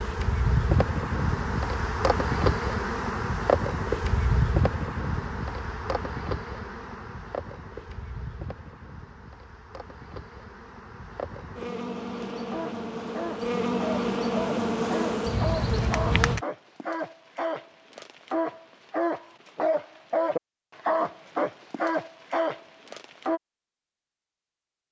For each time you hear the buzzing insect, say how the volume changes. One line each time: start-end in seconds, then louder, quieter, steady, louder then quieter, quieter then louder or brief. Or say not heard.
0.0-16.4 quieter then louder.